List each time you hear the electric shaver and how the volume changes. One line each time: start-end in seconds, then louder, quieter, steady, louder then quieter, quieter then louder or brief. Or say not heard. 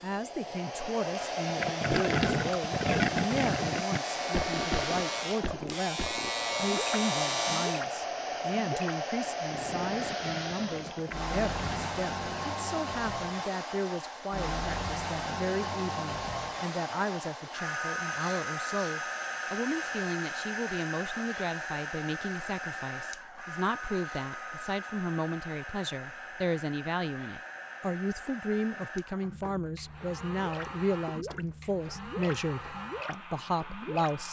0.0-7.8 louder.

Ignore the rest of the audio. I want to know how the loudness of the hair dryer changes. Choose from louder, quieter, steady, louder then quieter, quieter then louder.
quieter.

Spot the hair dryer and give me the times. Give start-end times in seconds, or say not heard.
0.0-34.2.